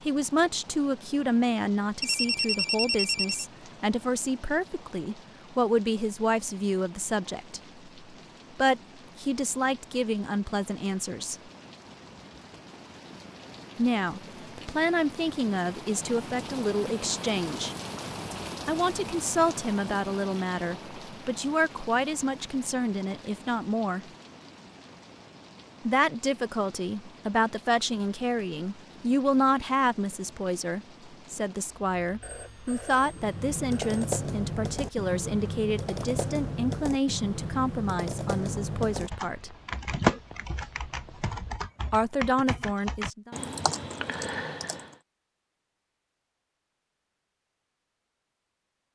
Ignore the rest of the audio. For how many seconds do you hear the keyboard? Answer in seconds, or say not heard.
12 s.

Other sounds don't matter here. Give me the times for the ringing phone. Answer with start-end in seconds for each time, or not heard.
2.0-3.5, 32.2-34.0.